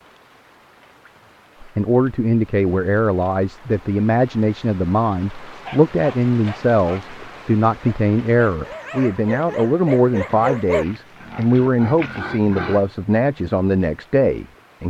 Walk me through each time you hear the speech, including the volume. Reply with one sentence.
The speech can be heard from 1.6 to 14.8 s, at a steady volume.